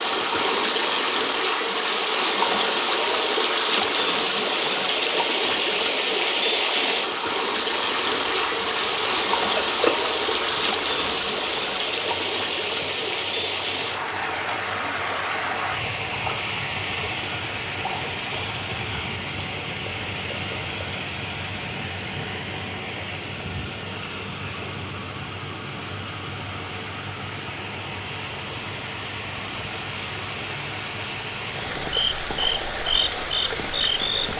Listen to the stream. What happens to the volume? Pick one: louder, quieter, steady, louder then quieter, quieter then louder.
quieter.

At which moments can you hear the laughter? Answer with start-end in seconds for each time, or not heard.
not heard.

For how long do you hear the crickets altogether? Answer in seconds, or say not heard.
27 s.